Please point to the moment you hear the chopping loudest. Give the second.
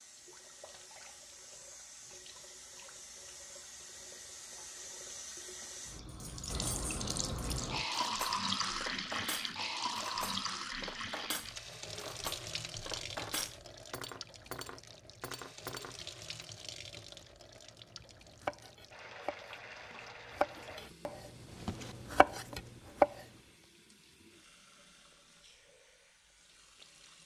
23 s.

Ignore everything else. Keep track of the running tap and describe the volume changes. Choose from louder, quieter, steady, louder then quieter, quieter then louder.
louder then quieter.